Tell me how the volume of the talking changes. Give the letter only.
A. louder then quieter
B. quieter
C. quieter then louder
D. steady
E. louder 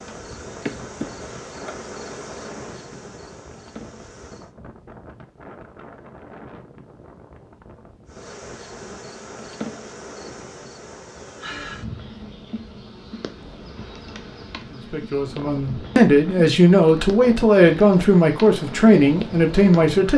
D.